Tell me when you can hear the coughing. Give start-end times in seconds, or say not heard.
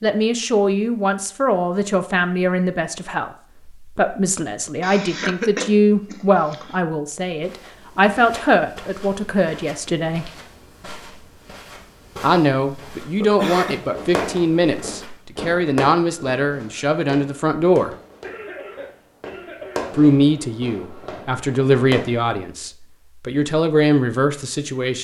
4.8-6.8, 13.2-13.8, 18.2-19.9.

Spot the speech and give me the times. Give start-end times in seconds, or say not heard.
0.0-10.3, 12.2-17.9, 19.9-25.0.